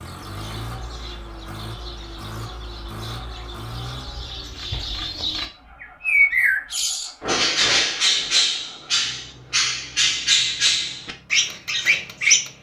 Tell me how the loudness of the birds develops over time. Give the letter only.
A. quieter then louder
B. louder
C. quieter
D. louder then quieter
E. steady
B.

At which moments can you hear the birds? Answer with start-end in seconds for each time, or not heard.
0.0-12.5.